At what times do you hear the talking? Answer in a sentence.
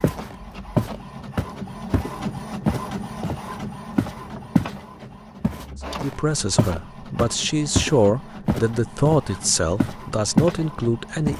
You can hear the talking from 6.0 to 11.3 s.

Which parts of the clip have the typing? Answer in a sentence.
The typing can't be heard in this clip.